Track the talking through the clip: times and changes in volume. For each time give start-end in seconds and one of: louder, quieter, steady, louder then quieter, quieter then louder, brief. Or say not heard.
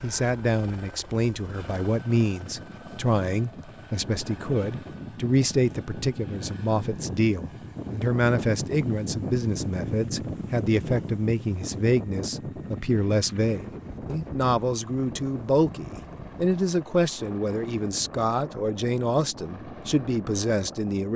0.0-21.1 steady.